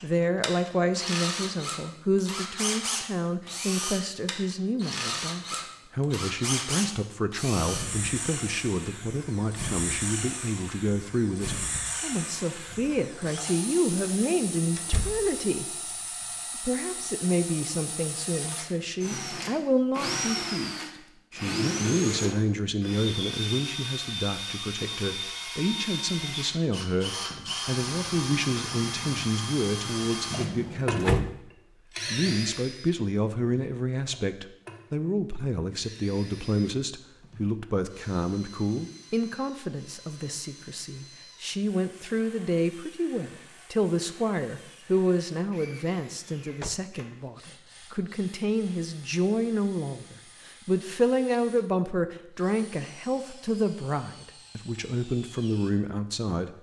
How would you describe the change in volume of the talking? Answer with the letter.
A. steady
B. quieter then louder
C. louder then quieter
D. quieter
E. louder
A.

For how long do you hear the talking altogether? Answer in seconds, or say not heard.
55 s.